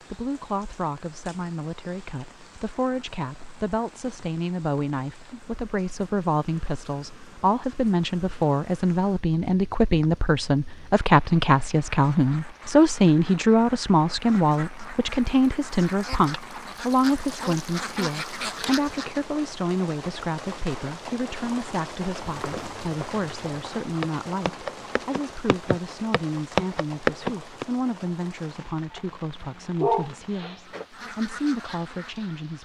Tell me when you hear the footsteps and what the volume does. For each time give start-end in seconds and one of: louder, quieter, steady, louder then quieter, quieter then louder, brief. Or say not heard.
22.2-27.6 louder.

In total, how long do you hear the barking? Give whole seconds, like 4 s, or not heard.
2 s.